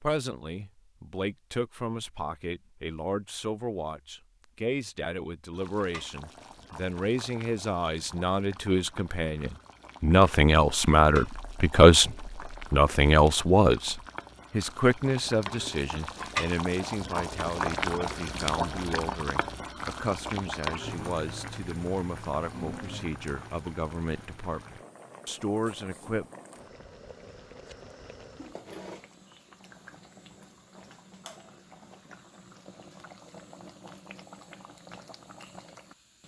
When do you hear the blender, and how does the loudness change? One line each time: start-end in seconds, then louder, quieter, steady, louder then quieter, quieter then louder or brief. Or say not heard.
not heard.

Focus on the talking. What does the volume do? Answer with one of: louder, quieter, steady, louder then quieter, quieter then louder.
louder then quieter.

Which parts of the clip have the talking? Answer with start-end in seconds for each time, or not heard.
0.0-26.2.